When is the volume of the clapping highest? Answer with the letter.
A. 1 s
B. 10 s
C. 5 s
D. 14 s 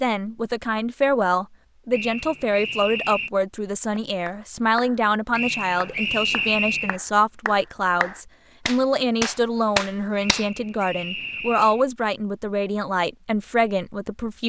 B.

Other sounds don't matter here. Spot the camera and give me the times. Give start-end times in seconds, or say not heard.
not heard.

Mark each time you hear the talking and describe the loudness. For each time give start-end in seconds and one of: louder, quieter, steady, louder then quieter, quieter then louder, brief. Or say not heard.
0.0-14.4 steady.